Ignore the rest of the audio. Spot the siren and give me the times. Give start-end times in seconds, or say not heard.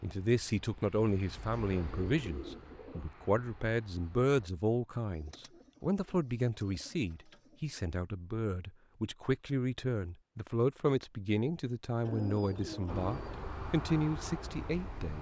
not heard.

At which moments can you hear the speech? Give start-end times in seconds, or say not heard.
0.0-15.1.